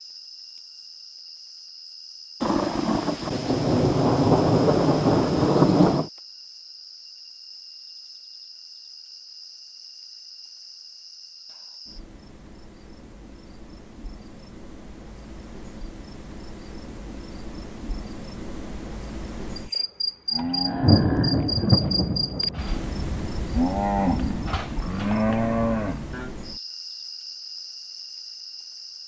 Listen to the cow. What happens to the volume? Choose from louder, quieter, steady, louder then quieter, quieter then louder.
quieter then louder.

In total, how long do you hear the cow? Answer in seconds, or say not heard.
6 s.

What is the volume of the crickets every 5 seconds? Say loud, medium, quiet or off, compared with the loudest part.
quiet, quiet, quiet, medium, loud, medium.